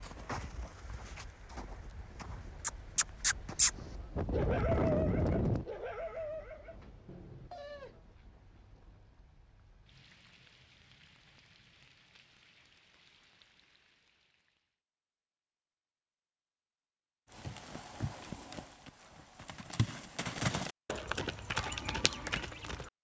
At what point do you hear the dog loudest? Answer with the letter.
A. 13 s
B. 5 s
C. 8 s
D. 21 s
B.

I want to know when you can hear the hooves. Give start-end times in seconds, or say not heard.
0.0-5.7, 17.3-22.9.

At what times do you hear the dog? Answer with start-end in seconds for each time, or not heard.
4.3-8.0.